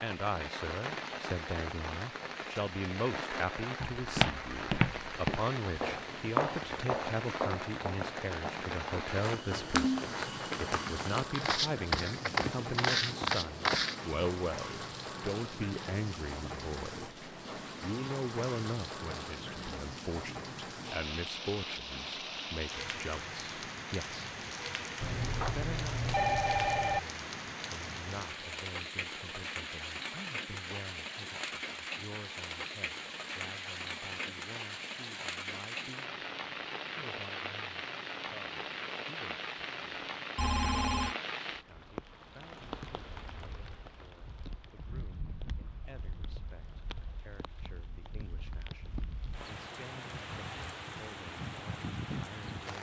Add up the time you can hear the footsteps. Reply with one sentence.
The footsteps can be heard for 10 seconds in total.